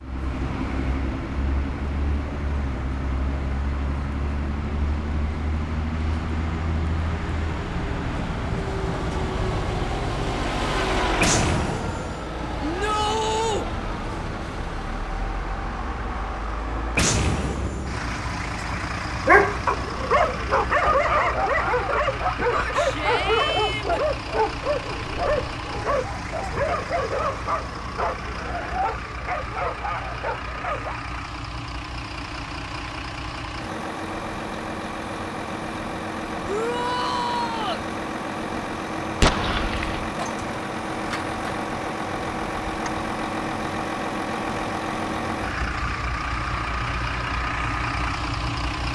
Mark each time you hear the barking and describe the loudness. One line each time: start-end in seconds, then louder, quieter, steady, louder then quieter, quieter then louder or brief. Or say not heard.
19.1-31.0 quieter.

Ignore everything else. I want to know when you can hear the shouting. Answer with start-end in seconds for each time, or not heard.
12.6-13.7, 22.5-24.0, 36.5-37.9.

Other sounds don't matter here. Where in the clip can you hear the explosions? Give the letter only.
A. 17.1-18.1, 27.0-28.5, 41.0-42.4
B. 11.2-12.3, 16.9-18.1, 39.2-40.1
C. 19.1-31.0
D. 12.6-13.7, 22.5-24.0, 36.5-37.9
B.